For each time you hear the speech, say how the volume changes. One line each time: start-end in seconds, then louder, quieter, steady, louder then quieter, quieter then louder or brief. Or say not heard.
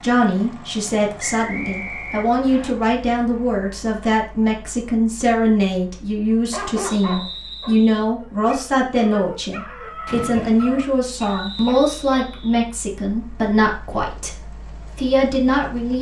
0.0-15.9 steady.